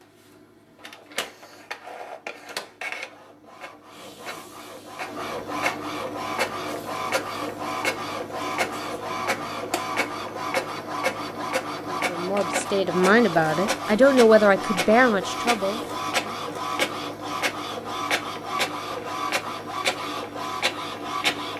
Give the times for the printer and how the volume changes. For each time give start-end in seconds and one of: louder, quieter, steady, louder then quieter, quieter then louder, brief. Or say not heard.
0.0-21.5 louder.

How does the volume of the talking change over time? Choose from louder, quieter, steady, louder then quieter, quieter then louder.
louder then quieter.